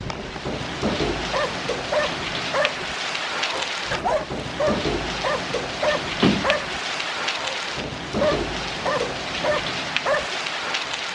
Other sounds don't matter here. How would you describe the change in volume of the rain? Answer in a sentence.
The loudness of the rain stays about the same.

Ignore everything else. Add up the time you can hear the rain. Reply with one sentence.
You can hear the rain for 11 seconds altogether.